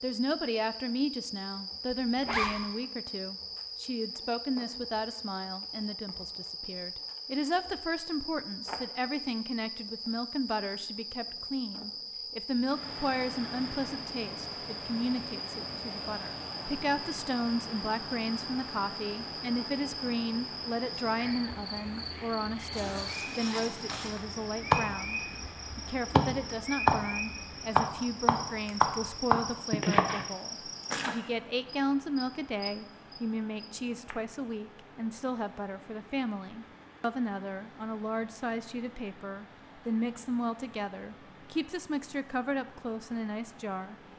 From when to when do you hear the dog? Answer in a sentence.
You can't hear the dog here.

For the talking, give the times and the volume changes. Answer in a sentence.
You can hear the talking from 0.0 to 44.0 s, at a steady volume.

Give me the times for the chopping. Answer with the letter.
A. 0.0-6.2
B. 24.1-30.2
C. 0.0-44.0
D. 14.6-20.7
B.